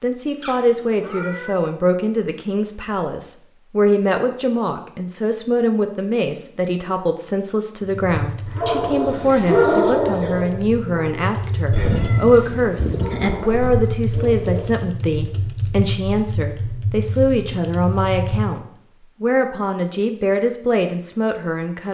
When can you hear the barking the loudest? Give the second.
10 s.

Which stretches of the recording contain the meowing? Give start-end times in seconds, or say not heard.
0.4-1.6, 11.7-13.2.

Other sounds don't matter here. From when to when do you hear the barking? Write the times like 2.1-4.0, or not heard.
8.4-12.2, 12.9-14.7.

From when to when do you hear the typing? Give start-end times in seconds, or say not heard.
7.8-18.6.